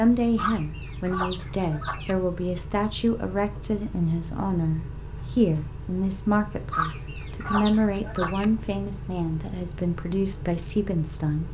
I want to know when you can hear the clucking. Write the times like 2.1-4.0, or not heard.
0.3-2.1, 6.7-8.4.